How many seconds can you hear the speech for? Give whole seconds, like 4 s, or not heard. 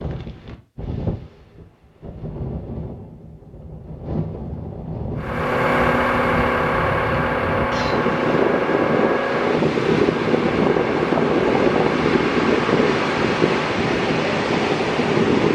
not heard.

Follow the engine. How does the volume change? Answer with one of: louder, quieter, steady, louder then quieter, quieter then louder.
quieter.